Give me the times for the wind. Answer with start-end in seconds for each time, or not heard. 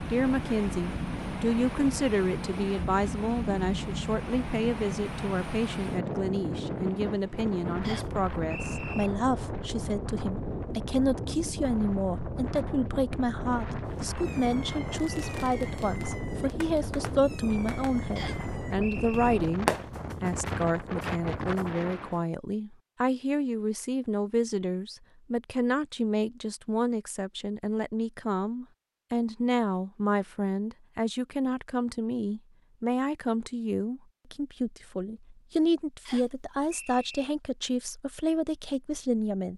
0.0-22.3.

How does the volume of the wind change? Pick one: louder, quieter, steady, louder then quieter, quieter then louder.
steady.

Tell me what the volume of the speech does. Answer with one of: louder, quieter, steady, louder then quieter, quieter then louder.
steady.